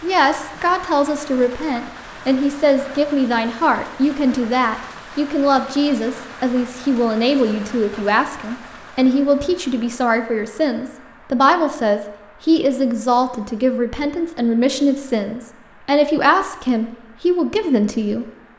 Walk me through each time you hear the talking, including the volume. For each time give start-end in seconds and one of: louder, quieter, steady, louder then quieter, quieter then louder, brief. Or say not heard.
0.0-18.2 steady.